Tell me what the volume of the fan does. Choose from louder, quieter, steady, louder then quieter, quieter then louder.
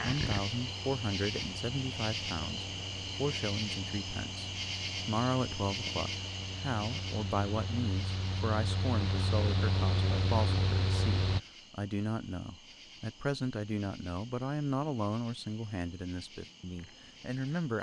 louder.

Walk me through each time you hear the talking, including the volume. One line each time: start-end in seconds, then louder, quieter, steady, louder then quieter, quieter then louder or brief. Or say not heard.
0.0-17.7 steady.